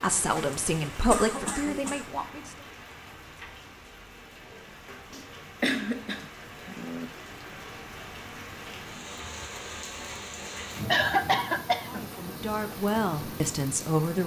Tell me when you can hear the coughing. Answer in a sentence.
You can hear the coughing from 0.2 to 2.0 s, from 5.1 to 7.0 s and from 10.8 to 12.0 s.